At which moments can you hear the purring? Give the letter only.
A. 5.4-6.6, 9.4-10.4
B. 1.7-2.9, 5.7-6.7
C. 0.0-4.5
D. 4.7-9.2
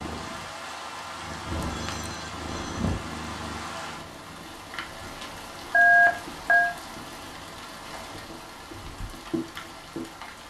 C.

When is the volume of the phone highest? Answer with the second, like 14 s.
6 s.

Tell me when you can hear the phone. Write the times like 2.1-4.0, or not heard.
1.7-2.9, 5.7-6.7.